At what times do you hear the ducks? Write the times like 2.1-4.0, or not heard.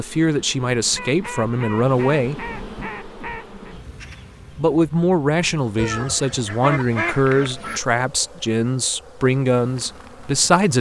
0.9-3.8, 5.8-7.8.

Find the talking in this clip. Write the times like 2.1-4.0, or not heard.
0.0-2.5, 4.5-10.7.